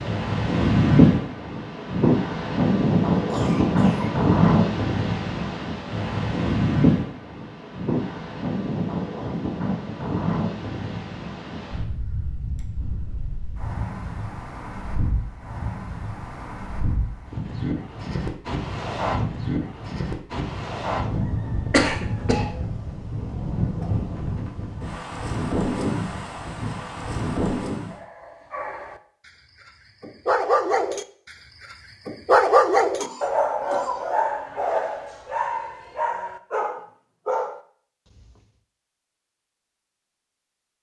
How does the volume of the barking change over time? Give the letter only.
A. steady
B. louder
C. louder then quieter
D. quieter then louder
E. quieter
C.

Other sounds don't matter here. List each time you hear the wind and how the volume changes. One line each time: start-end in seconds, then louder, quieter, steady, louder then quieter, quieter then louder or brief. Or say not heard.
0.0-28.0 quieter then louder.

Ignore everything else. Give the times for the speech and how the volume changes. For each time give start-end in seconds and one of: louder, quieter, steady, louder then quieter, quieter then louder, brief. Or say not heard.
not heard.